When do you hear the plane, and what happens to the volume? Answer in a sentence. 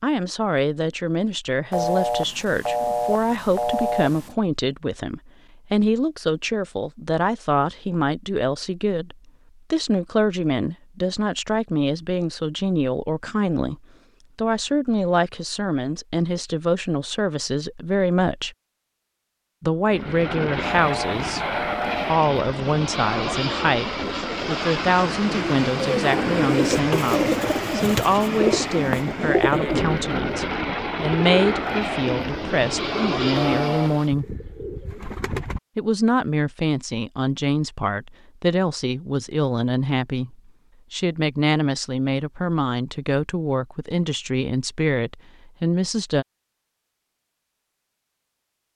You can hear the plane from 19.9 to 34.1 s, at a steady volume.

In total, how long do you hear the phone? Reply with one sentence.
The phone can be heard for 5 seconds in total.